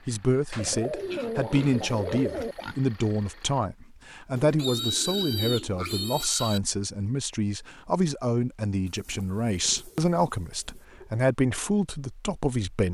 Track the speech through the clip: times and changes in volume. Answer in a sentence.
The speech can be heard from 0.1 to 12.8 s, at a steady volume.